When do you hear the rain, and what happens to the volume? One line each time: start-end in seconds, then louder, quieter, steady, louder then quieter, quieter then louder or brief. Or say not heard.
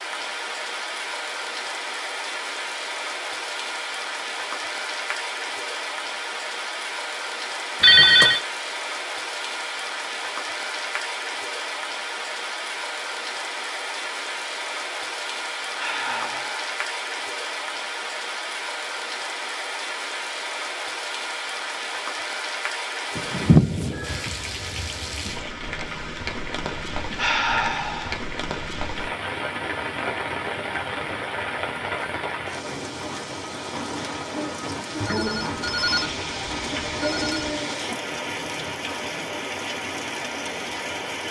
0.0-41.2 steady.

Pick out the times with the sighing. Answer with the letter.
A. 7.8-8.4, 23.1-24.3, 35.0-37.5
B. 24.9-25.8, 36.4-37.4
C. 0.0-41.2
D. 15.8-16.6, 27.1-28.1
D.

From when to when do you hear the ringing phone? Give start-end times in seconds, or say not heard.
7.8-8.4, 23.1-24.3, 35.0-37.5.